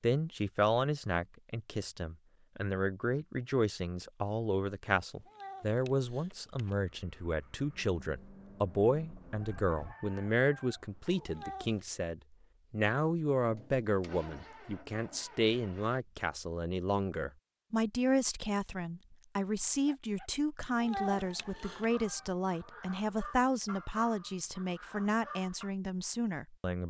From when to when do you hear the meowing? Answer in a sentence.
You can hear the meowing from 5.0 to 6.8 s, from 11.2 to 11.9 s and from 20.6 to 21.9 s.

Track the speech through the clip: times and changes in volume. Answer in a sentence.
The speech can be heard from 0.0 to 26.8 s, at a steady volume.